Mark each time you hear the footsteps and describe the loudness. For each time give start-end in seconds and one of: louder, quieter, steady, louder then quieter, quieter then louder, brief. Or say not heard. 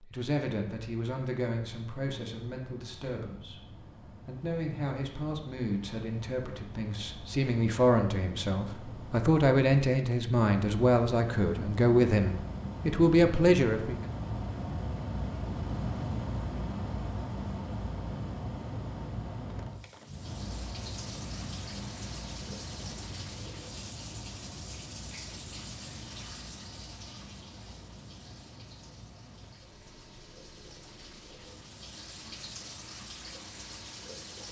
not heard.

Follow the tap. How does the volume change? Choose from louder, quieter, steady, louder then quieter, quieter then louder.
quieter then louder.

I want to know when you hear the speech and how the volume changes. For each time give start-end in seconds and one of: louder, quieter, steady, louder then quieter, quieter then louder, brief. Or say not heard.
0.0-14.1 louder.